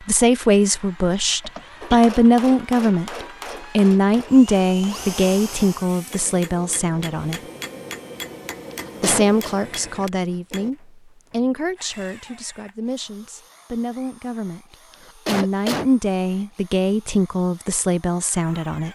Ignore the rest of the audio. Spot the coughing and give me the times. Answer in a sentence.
The coughing can be heard from 1.4 to 2.1 s, from 8.7 to 9.6 s and from 14.9 to 15.9 s.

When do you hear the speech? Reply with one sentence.
The speech can be heard from 0.1 to 7.4 s and from 9.0 to 18.9 s.